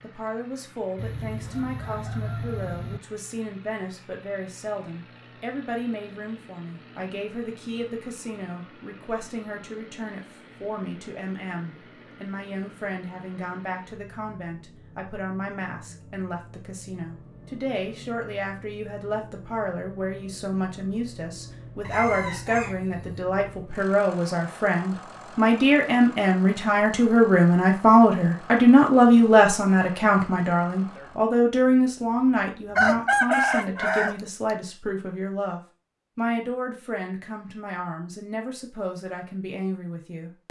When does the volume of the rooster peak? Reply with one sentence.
The loudest moment of the rooster is at 33 seconds.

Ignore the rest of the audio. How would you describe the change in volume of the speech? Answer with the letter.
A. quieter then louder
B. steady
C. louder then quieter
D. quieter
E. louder
C.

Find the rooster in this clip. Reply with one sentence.
The rooster can be heard from 0.9 to 3.0 s, from 21.8 to 23.2 s and from 32.8 to 34.1 s.